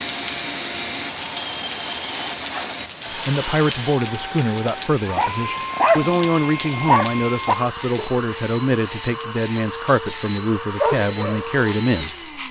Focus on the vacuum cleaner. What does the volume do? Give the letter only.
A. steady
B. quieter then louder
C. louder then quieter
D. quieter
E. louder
A.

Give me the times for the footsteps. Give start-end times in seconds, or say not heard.
not heard.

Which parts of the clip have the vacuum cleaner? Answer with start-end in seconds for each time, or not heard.
0.0-12.4.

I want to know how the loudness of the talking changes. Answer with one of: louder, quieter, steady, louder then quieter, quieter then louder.
steady.